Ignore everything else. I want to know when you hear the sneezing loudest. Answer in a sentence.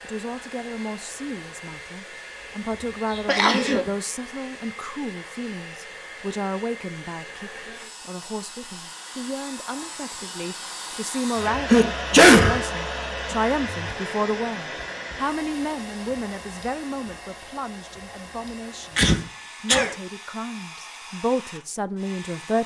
The loudest moment of the sneezing is at 12 seconds.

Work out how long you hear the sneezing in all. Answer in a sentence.
The sneezing can be heard for 3 seconds in total.